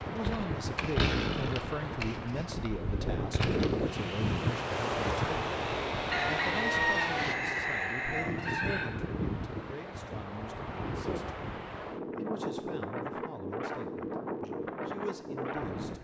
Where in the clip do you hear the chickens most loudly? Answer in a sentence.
The volume of the chickens peaks at 7 seconds.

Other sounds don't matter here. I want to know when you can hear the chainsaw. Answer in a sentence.
The chainsaw can be heard from 0.0 to 7.3 s.